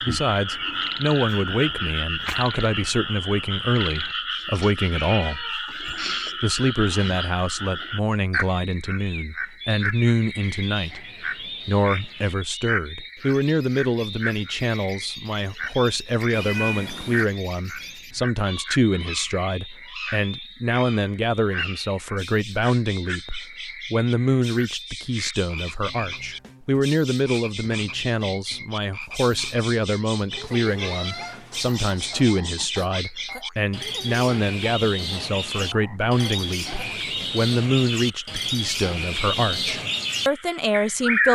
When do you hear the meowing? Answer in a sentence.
You can hear the meowing from 4.5 to 6.3 s, from 16.3 to 17.2 s and from 30.3 to 32.3 s.